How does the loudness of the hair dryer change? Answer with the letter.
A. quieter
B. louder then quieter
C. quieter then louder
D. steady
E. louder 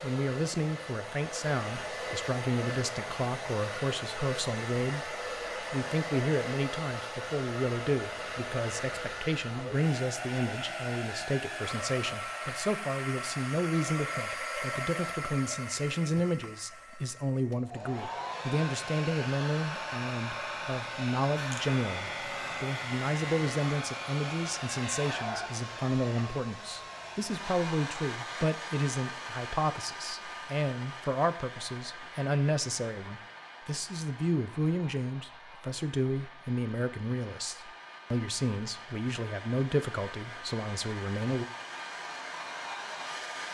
A.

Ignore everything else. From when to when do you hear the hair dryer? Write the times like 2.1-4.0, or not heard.
0.0-43.4.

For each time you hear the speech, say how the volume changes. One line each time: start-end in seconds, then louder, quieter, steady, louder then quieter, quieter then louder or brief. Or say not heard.
0.0-41.5 steady.